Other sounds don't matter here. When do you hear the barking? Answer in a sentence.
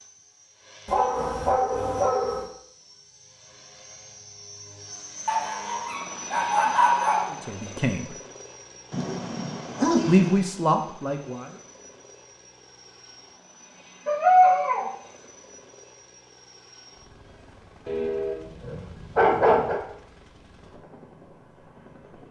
The barking can be heard from 0.8 to 2.5 s, from 5.2 to 7.3 s, from 8.9 to 10.3 s, from 14.1 to 14.9 s and from 17.9 to 19.8 s.